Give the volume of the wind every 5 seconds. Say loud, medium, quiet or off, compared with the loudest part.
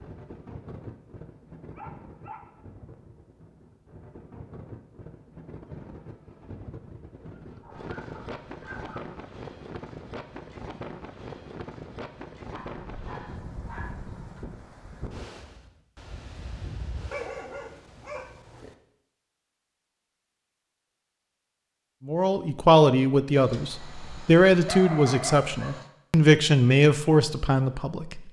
medium, loud, loud, loud, off, off.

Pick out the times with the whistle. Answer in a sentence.
The whistle can't be heard in this clip.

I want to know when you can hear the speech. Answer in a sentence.
The speech can be heard from 22.1 to 28.2 s.